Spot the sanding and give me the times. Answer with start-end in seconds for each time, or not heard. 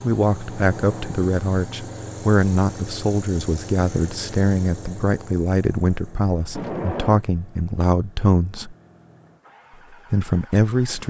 not heard.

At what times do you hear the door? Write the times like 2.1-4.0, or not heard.
0.5-1.3, 6.5-7.2.